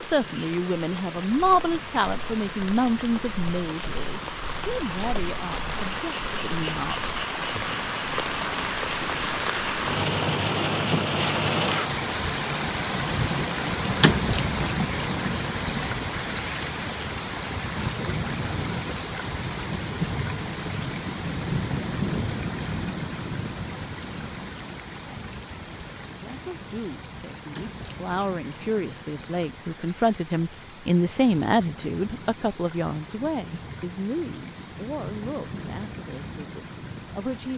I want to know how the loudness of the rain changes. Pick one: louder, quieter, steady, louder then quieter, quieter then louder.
louder then quieter.